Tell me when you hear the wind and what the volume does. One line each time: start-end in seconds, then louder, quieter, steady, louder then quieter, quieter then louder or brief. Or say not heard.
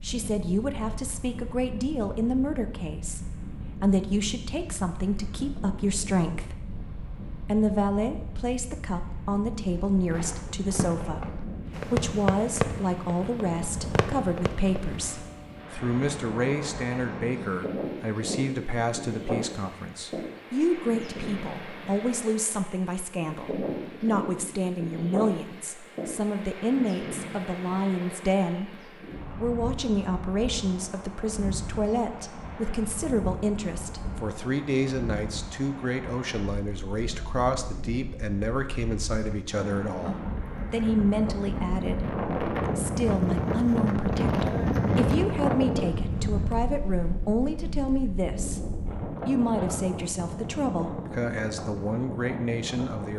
0.0-53.1 louder.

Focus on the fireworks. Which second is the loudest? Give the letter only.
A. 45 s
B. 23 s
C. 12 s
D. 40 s
C.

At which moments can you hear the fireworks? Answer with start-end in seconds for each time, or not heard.
10.1-15.2.